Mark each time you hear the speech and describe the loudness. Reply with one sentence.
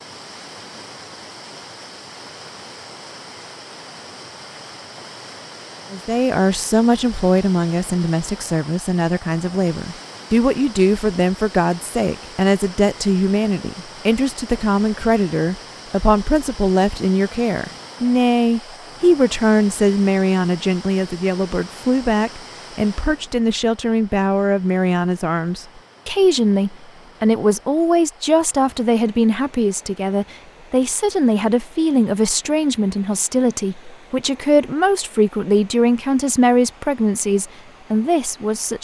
The speech can be heard from 5.9 to 38.8 s, at a steady volume.